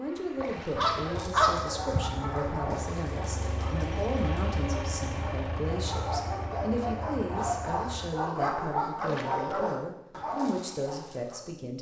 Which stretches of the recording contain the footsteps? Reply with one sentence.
The footsteps can't be heard in this clip.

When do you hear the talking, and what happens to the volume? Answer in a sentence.
The talking can be heard from 0.0 to 11.7 s, at a steady volume.